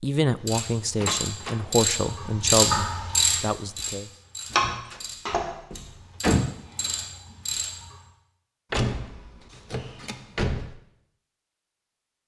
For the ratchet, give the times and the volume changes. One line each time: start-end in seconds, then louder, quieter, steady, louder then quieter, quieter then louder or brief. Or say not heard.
0.3-8.0 louder then quieter.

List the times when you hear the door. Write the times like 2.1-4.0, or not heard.
0.9-1.6, 4.5-6.5, 8.7-10.8.